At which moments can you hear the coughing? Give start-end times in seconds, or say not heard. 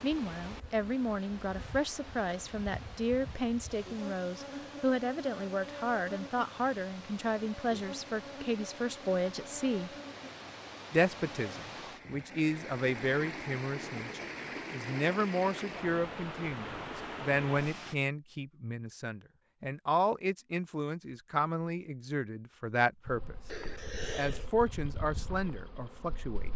23.4-24.4.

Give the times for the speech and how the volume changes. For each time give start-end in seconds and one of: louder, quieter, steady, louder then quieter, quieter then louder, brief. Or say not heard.
0.0-9.9 steady
10.9-26.5 steady.